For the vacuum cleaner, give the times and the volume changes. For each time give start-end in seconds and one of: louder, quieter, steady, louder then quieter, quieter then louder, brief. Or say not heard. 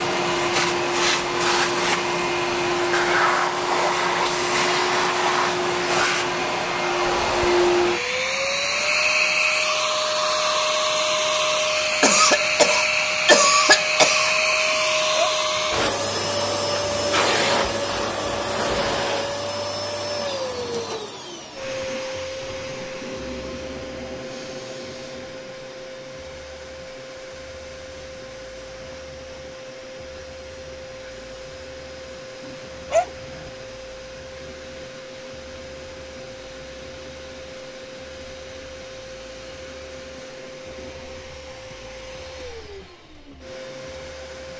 0.0-44.5 quieter.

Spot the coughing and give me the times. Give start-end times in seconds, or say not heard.
12.0-14.3.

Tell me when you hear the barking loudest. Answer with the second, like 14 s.
33 s.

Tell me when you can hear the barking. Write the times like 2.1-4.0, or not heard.
14.7-15.8, 32.5-33.5.